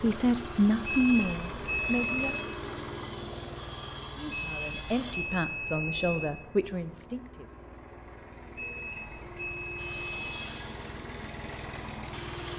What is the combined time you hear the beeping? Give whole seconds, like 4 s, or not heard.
5 s.